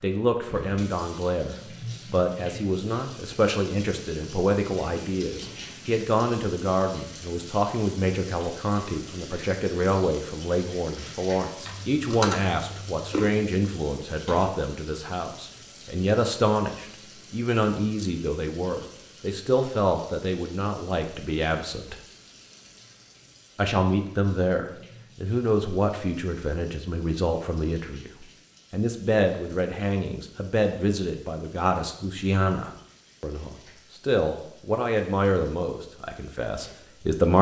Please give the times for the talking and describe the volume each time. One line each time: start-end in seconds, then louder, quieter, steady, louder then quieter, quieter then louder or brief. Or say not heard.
0.0-21.9 steady
23.6-37.3 steady.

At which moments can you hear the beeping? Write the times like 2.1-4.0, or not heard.
not heard.